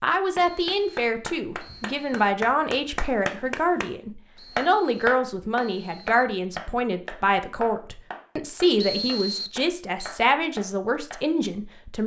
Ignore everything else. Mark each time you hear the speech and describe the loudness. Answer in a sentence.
You can hear the speech from 0.0 to 12.0 s, at a steady volume.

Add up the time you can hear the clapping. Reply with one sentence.
You can hear the clapping for 10 seconds altogether.